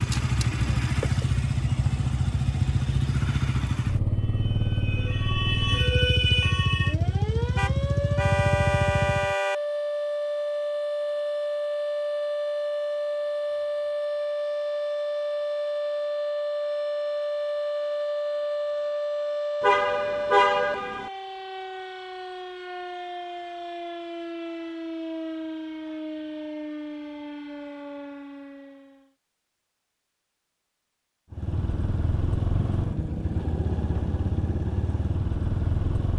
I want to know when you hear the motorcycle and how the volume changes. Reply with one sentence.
The motorcycle can be heard from 0.0 to 9.3 s, at a steady volume; and from 31.3 to 36.1 s, at a steady volume.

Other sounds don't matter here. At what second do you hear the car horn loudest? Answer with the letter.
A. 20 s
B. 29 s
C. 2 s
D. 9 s
A.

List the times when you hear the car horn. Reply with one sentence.
You can hear the car horn from 7.5 to 9.6 s and from 19.6 to 21.1 s.